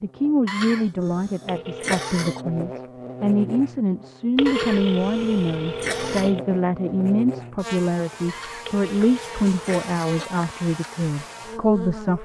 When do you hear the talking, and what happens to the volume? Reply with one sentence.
The talking can be heard from 0.0 to 12.1 s, at a steady volume.